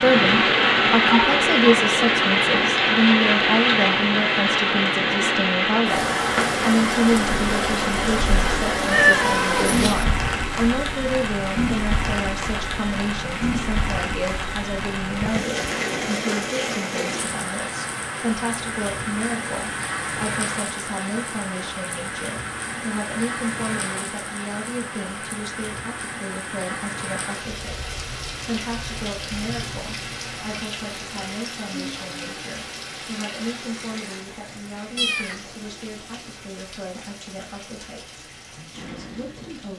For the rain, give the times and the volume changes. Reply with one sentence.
You can hear the rain from 0.0 to 39.7 s, getting quieter.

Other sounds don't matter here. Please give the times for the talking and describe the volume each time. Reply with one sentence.
The talking can be heard from 0.0 to 39.7 s, getting quieter.